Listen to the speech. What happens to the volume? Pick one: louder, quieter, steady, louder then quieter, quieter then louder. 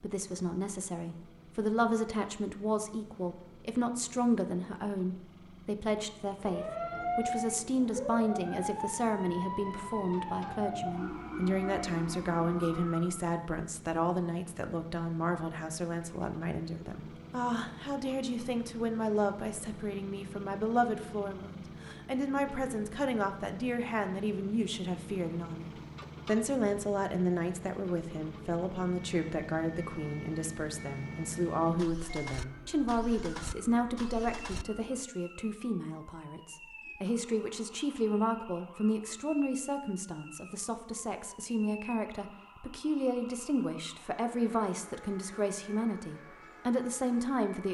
steady.